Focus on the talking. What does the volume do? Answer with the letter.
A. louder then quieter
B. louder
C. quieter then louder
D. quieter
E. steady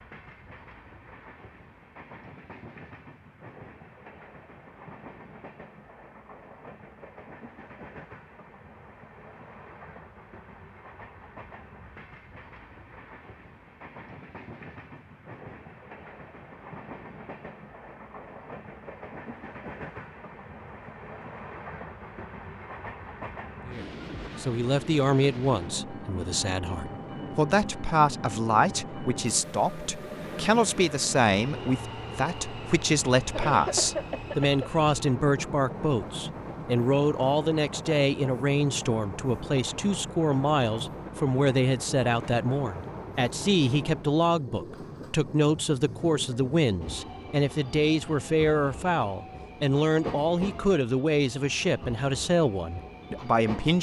E.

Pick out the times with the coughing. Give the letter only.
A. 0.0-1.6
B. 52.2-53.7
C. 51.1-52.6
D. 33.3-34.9
D.